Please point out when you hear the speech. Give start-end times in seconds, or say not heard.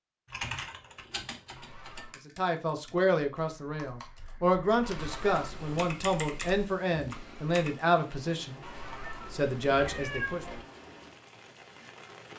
2.2-8.6, 9.3-10.4.